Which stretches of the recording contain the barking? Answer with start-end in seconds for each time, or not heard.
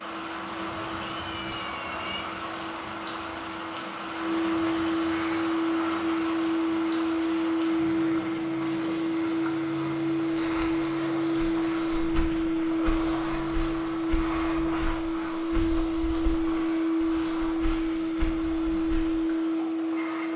not heard.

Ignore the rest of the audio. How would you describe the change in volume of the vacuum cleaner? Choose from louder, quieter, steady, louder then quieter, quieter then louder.
louder.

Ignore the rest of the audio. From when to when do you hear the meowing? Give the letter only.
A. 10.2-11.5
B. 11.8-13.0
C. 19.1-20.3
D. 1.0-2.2
D.